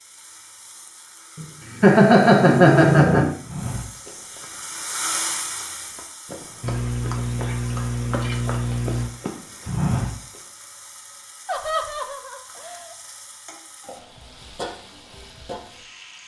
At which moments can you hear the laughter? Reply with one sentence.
The laughter can be heard from 1.4 to 3.4 s, from 6.6 to 9.1 s and from 11.4 to 12.9 s.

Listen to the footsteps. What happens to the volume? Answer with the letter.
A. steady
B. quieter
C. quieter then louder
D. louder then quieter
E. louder
C.